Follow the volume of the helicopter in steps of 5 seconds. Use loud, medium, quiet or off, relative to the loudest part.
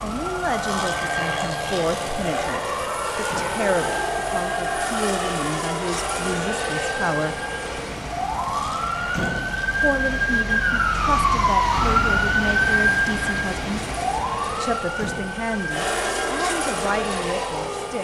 loud, loud, medium, loud.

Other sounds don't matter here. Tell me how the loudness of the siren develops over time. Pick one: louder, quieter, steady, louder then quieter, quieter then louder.
louder then quieter.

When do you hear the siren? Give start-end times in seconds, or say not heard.
0.0-17.9.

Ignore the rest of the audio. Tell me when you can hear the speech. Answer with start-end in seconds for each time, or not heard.
0.0-7.3, 9.8-13.8, 14.6-17.9.